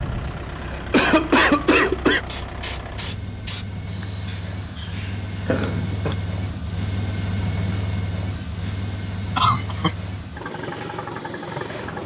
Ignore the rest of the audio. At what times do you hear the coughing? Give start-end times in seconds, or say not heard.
0.2-2.2, 5.5-6.2, 9.3-9.9.